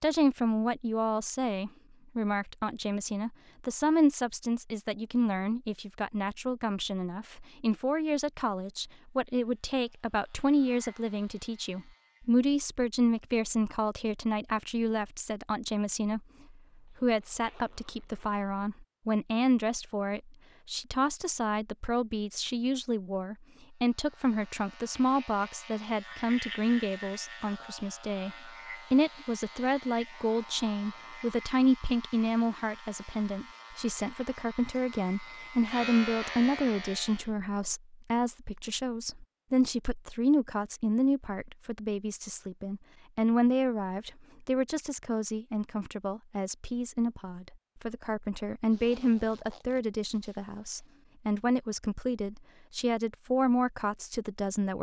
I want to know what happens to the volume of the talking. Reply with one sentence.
The loudness of the talking stays about the same.